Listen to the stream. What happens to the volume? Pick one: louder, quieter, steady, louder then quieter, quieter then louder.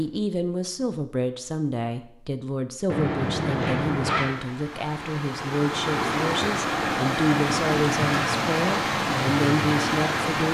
louder.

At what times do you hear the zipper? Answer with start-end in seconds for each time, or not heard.
2.9-4.3.